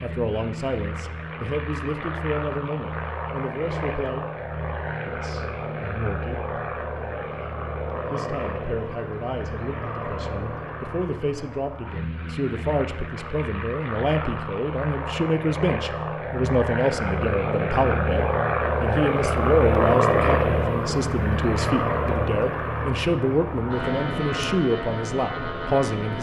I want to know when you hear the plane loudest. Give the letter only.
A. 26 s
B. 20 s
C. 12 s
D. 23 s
B.